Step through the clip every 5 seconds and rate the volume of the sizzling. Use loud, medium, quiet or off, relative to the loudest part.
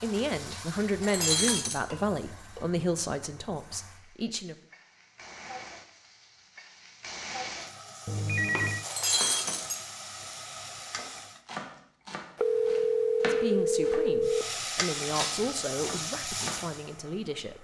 medium, medium, loud, loud.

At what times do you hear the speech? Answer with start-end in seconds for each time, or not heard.
0.0-4.5, 13.2-17.5.